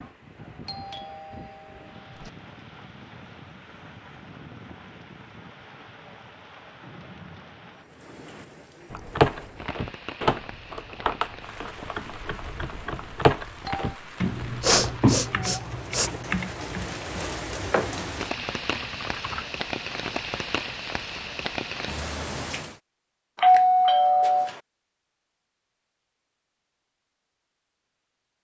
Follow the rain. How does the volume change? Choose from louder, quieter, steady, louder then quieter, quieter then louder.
louder.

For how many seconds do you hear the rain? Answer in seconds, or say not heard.
23 s.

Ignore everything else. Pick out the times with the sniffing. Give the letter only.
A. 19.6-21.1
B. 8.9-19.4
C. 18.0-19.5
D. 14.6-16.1
D.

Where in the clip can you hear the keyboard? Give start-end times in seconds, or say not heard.
8.9-19.4.